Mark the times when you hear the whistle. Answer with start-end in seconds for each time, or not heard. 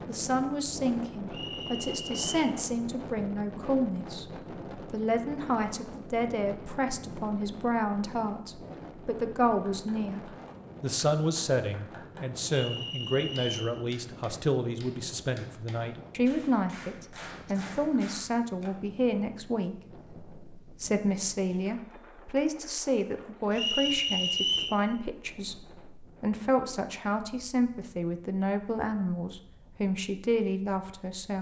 1.3-2.3, 12.5-13.8, 23.5-24.8.